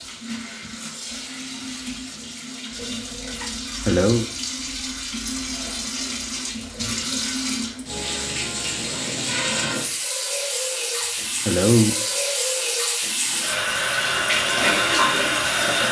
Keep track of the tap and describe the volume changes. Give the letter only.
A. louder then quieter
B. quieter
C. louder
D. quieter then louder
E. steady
C.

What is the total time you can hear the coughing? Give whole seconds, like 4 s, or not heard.
2 s.